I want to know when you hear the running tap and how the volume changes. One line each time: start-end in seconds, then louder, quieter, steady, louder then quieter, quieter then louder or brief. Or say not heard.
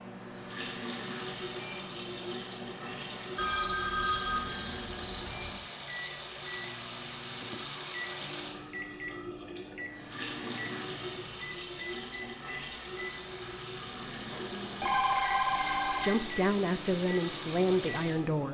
0.0-18.4 steady.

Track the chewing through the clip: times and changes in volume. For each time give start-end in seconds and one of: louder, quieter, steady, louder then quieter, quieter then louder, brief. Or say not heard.
not heard.